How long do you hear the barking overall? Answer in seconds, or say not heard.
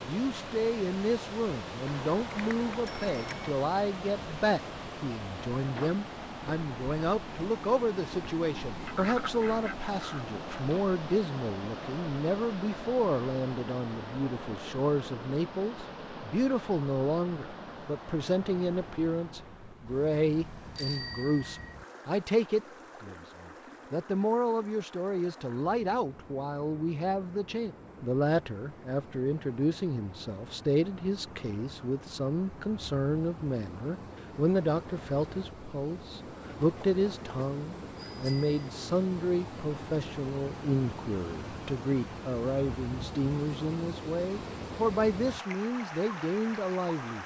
not heard.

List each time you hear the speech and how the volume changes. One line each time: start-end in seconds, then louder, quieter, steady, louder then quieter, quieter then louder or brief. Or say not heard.
0.0-47.2 steady.